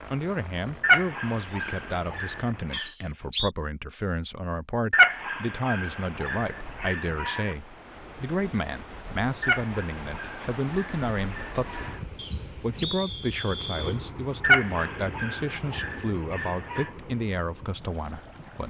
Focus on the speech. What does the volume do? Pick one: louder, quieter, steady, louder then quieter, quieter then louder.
steady.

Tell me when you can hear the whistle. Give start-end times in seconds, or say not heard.
2.7-3.5, 12.2-14.0.